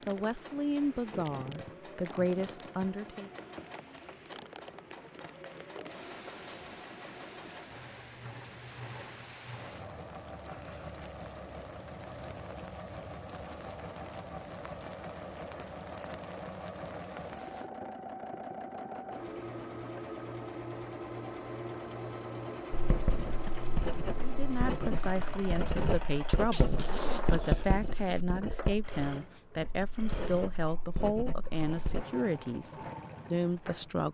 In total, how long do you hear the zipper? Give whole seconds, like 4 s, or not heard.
2 s.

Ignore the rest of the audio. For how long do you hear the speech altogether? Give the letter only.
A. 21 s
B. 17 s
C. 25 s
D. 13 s
D.